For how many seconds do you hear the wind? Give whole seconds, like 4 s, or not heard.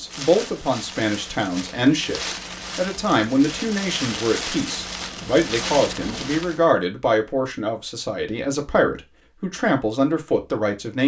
7 s.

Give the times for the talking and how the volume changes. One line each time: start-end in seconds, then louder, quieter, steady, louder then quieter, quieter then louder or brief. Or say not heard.
0.0-11.0 steady.